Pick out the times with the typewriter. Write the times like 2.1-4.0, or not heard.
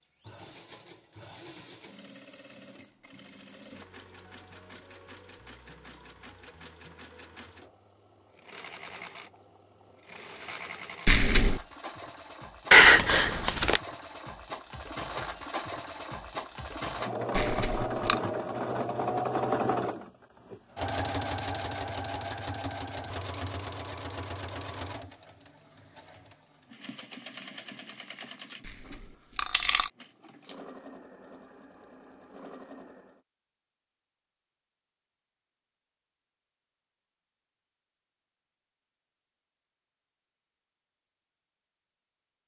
not heard.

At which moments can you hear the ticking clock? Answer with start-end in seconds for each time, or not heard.
not heard.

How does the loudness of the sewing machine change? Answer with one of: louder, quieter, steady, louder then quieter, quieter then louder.
louder then quieter.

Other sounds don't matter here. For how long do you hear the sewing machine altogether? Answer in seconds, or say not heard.
33 s.